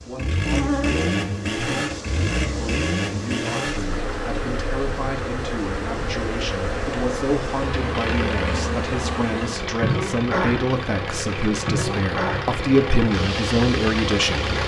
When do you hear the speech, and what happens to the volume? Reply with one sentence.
The speech can be heard from 0.0 to 14.6 s, getting louder.